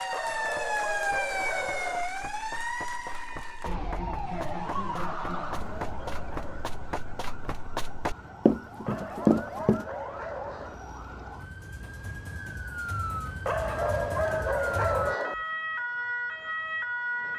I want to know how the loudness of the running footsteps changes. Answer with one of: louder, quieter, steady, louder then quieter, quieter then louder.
louder.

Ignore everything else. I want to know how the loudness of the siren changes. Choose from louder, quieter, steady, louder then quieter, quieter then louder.
quieter then louder.